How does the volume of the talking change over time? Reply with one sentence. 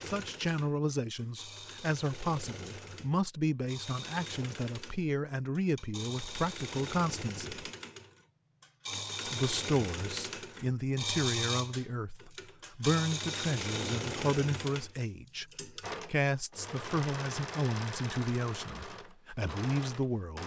The volume of the talking stays about the same.